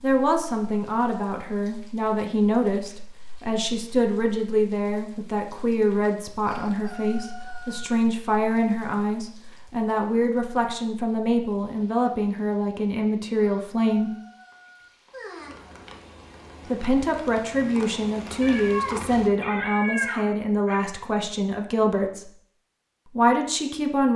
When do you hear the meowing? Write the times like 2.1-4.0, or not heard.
18.4-20.9.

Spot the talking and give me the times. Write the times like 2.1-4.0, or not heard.
0.0-14.1, 16.6-22.3, 23.1-24.1.